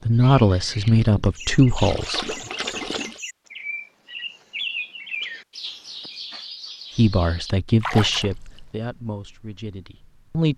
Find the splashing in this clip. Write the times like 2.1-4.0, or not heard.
0.8-3.2, 7.8-8.6.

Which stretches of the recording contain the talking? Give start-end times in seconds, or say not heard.
0.1-2.4, 7.0-10.5.